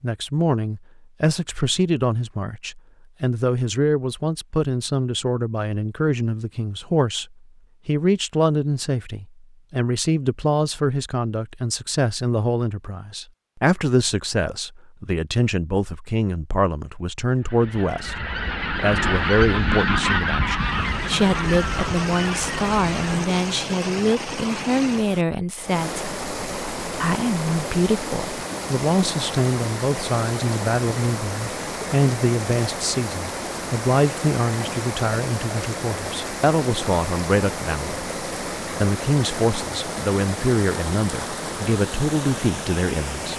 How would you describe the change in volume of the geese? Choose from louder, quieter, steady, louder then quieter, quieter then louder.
louder then quieter.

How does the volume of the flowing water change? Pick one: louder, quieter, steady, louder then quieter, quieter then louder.
steady.